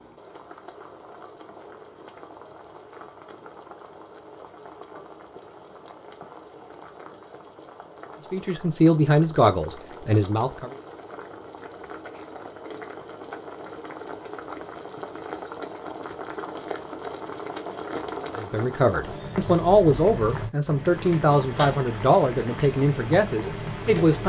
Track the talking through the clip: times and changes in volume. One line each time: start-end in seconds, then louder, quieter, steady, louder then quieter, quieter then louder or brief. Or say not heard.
8.3-10.7 brief
18.4-24.2 steady.